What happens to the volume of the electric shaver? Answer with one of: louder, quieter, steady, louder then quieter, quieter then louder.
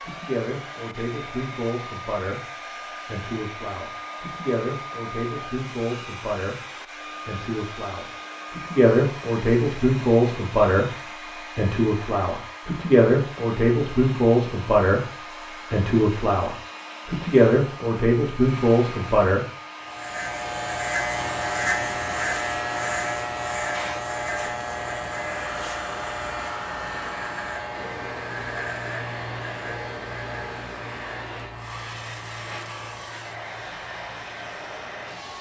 quieter.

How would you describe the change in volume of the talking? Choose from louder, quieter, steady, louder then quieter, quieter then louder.
louder.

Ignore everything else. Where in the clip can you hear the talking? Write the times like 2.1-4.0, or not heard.
0.0-19.4.